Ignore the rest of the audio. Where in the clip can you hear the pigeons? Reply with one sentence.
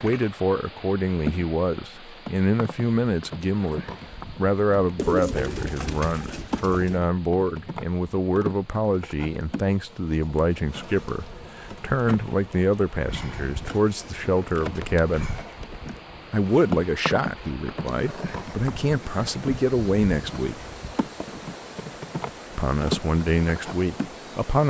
The pigeons can be heard from 5.0 to 7.0 s.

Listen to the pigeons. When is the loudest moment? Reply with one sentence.
The loudest moment of the pigeons is at 5 seconds.